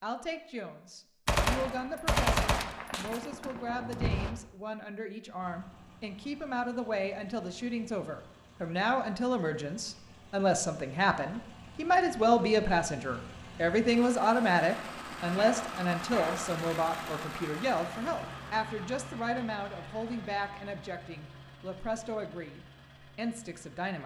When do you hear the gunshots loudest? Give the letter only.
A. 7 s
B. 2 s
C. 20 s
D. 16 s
B.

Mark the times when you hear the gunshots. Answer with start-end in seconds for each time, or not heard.
1.2-4.3, 15.3-16.5.